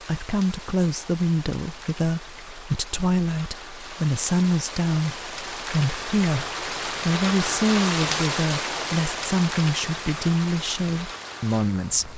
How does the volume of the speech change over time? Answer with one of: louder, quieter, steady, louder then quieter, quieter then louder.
steady.